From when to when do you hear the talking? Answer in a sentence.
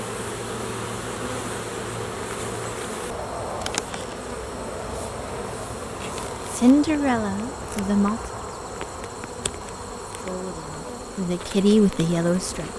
The talking can be heard from 6.5 to 8.2 s and from 10.1 to 12.7 s.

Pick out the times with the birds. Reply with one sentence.
You can't hear the birds here.